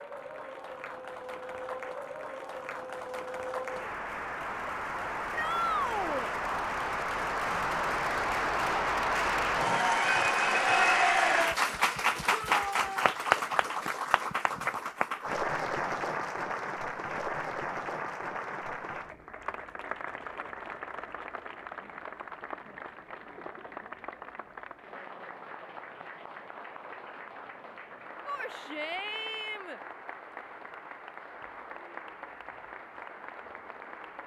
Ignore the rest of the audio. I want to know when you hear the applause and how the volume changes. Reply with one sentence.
You can hear the applause from 0.0 to 34.2 s, getting louder then quieter.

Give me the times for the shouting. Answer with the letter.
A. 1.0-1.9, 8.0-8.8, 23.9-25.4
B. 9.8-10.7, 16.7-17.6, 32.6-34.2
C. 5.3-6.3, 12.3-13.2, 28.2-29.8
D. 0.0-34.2
C.